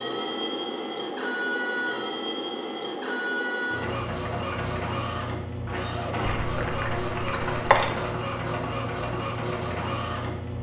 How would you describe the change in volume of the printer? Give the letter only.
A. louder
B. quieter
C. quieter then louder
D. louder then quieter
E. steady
E.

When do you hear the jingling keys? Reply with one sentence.
You can hear the jingling keys from 6.2 to 7.9 s.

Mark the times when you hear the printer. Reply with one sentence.
You can hear the printer from 0.0 to 10.5 s.